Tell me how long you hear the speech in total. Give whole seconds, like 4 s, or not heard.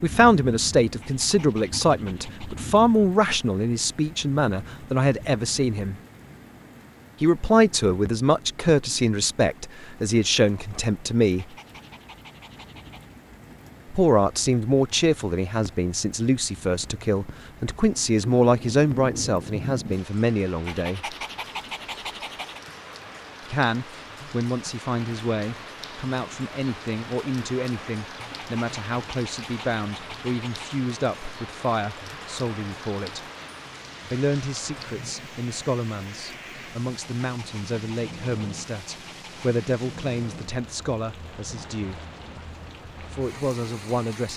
36 s.